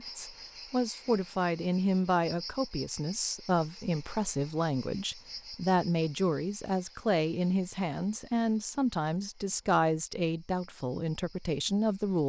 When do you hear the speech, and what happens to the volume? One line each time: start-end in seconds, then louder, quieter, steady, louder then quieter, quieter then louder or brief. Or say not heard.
0.0-12.2 steady.